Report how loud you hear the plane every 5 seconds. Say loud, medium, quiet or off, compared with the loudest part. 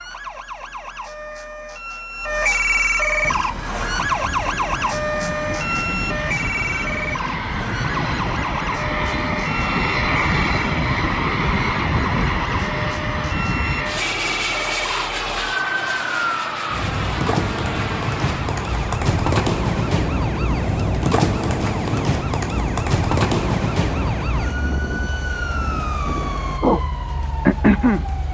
medium, loud, loud, medium, medium, medium.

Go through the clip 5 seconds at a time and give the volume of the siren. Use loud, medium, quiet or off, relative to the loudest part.
loud, medium, medium, loud, loud, loud.